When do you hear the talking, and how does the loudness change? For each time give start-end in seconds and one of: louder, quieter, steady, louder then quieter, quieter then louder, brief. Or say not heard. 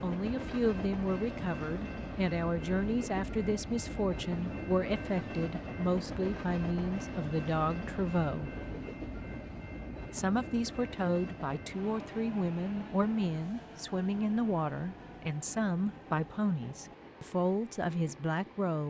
0.0-8.5 steady
10.1-18.8 steady.